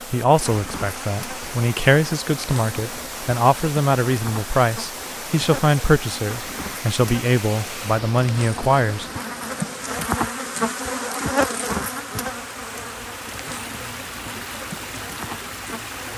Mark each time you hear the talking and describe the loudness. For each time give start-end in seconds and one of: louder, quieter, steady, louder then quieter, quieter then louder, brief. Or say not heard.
0.1-9.1 steady.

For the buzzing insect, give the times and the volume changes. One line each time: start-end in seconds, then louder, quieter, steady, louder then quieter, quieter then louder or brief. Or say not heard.
0.0-16.1 louder then quieter.